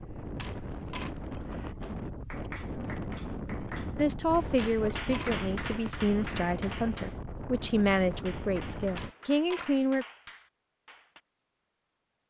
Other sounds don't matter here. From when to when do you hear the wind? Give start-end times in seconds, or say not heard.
0.0-9.2.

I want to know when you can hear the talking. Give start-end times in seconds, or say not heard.
4.0-10.1.